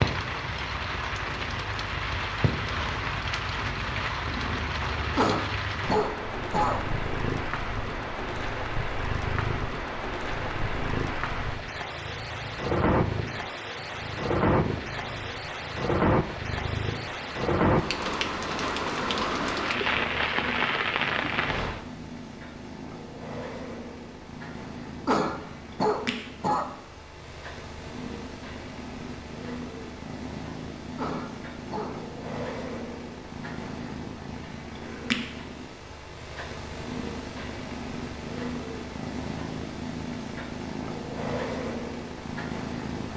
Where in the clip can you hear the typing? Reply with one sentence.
You can't hear the typing here.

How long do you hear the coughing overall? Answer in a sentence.
The coughing can be heard for 4 seconds in total.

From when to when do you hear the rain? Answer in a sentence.
You can hear the rain from 0.0 to 21.9 s.